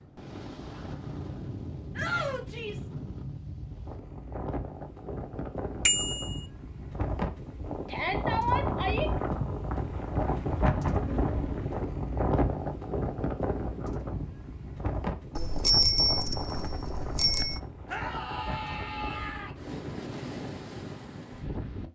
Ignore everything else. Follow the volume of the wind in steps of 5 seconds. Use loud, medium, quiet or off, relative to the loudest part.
medium, loud, loud, medium, medium.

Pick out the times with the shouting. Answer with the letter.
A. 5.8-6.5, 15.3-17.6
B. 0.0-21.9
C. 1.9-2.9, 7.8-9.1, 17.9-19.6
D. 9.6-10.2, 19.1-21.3
C.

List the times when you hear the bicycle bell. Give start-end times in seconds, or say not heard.
5.8-6.5, 15.3-17.6.